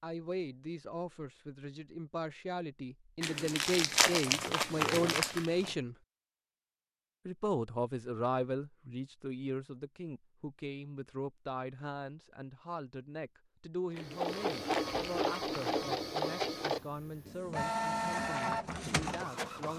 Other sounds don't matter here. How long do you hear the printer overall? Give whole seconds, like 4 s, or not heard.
6 s.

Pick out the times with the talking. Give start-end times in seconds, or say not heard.
0.0-6.0, 7.2-19.7.